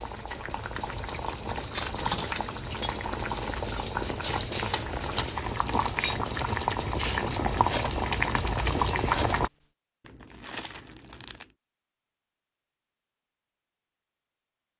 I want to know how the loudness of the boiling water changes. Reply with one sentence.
The loudness of the boiling water goes up.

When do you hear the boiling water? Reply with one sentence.
The boiling water can be heard from 0.0 to 9.5 s.